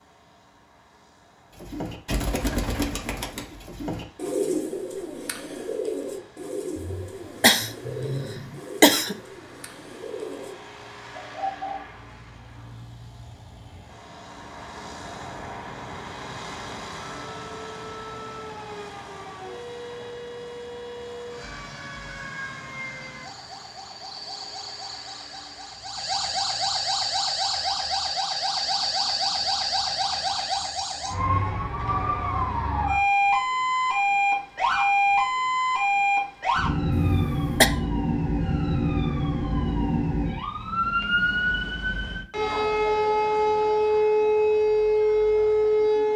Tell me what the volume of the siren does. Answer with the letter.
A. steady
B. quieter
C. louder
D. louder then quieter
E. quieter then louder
C.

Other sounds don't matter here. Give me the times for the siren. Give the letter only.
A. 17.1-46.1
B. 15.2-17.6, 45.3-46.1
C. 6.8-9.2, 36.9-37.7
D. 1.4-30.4
A.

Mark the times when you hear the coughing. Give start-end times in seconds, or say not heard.
6.8-9.2, 36.9-37.7.